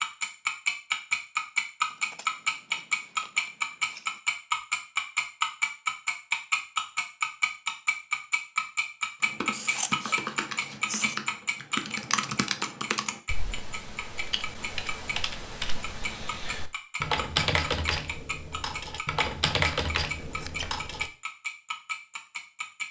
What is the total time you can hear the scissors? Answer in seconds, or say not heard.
5 s.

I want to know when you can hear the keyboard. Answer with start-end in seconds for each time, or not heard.
9.2-21.1.